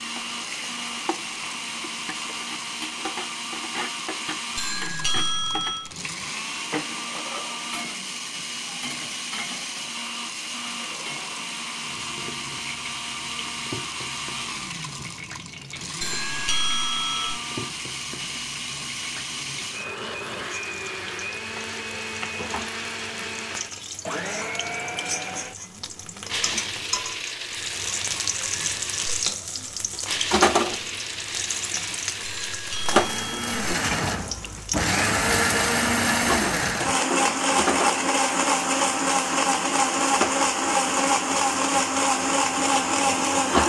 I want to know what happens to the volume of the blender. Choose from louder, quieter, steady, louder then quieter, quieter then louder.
louder.